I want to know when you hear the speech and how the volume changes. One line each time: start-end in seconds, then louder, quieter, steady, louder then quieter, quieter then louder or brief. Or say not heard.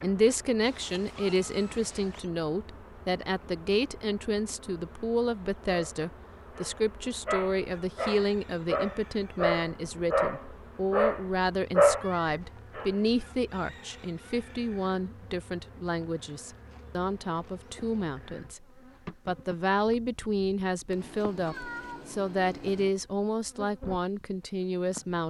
0.0-25.2 steady.